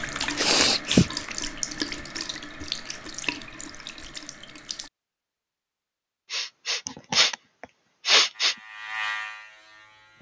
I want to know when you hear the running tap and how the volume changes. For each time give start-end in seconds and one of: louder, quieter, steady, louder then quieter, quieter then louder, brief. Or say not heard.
0.0-4.9 quieter.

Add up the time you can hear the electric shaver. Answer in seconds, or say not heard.
2 s.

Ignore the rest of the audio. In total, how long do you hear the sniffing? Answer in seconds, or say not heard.
3 s.